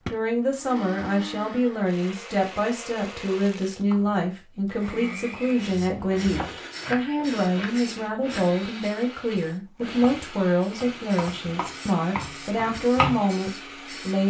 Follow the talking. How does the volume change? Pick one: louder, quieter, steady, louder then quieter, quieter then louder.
steady.